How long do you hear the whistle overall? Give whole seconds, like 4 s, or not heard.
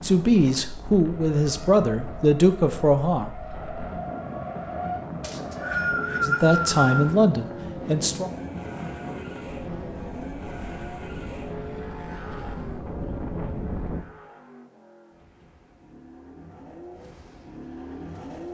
2 s.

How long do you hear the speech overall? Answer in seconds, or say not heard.
5 s.